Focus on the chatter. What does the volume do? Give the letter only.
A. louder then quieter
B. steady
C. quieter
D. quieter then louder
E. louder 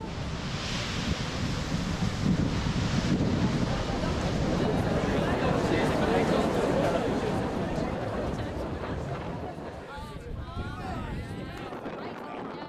A.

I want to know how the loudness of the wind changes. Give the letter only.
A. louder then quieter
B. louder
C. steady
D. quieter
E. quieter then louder
D.